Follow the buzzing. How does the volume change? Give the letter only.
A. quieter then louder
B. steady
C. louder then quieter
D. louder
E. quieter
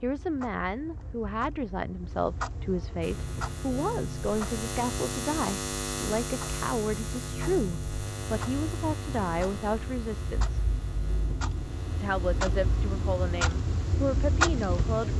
E.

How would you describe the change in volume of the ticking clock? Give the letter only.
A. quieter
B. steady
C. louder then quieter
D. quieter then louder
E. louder
E.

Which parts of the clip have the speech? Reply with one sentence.
You can hear the speech from 0.0 to 10.7 s and from 12.0 to 15.1 s.